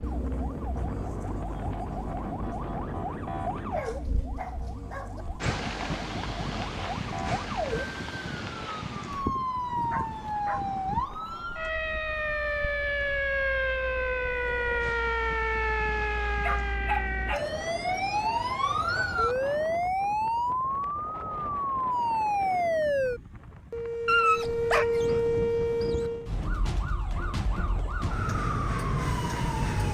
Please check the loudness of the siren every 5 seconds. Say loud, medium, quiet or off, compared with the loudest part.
medium, medium, loud, loud, loud, loud.